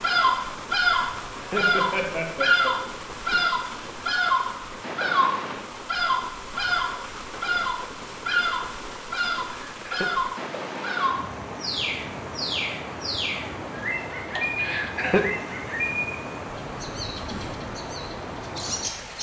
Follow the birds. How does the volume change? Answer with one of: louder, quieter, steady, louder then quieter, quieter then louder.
quieter.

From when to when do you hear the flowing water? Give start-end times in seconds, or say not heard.
0.0-19.1.